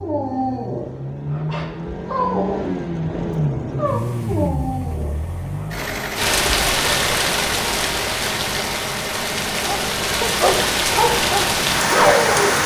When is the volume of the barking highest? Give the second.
12 s.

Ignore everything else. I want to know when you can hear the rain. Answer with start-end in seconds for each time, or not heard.
6.2-12.6.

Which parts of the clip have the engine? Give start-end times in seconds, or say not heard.
0.0-12.5.